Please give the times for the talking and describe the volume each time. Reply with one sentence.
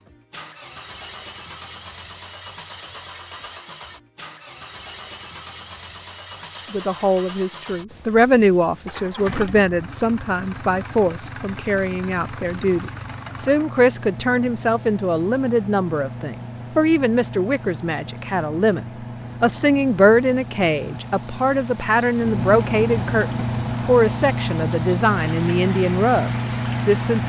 You can hear the talking from 6.5 to 27.2 s, at a steady volume.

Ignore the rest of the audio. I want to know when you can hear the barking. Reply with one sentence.
The barking can't be heard in this clip.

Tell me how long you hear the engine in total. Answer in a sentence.
You can hear the engine for 27 seconds altogether.